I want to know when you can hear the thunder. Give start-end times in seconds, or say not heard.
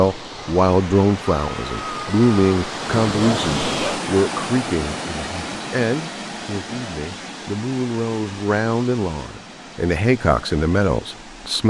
2.9-3.9.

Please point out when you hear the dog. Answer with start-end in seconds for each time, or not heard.
3.1-4.0.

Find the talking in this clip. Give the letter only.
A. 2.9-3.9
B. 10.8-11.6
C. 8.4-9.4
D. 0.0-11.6
D.